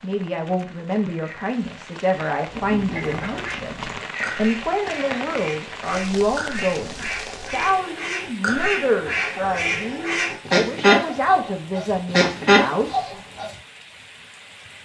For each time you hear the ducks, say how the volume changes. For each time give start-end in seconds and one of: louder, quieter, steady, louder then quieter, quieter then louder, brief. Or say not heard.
2.5-13.6 louder.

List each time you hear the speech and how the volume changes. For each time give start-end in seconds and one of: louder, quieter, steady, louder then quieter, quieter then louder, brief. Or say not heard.
0.0-13.2 steady.